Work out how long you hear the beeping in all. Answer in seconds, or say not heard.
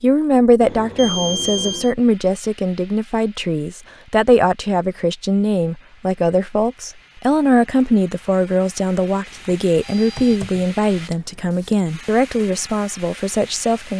2 s.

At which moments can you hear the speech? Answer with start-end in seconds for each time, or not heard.
0.0-13.9.